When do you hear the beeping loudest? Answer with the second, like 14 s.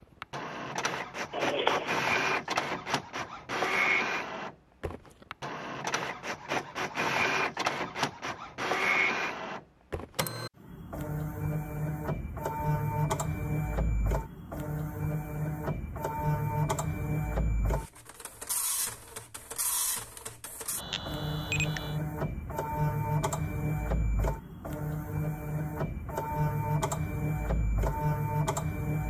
2 s.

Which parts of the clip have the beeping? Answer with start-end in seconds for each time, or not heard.
1.3-2.0, 20.8-22.0.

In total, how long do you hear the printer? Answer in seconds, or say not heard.
29 s.